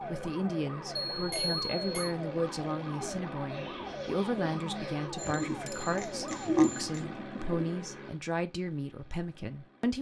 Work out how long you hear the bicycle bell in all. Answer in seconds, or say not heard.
3 s.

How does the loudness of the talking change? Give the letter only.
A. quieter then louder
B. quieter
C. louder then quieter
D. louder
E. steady
E.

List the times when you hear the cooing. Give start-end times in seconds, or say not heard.
3.0-7.7.